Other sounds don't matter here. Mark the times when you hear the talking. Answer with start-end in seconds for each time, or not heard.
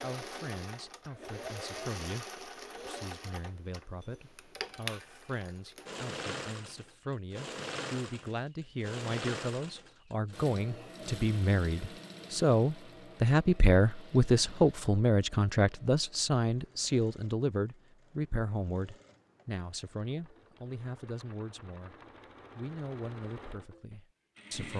0.0-21.9, 22.6-24.7.